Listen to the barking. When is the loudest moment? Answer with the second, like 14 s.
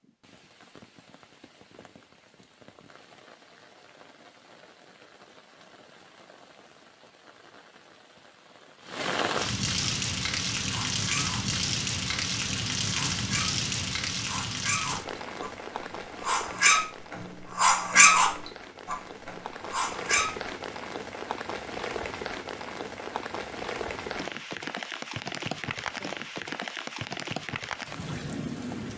18 s.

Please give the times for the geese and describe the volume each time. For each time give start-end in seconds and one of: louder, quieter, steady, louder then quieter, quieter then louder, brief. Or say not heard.
not heard.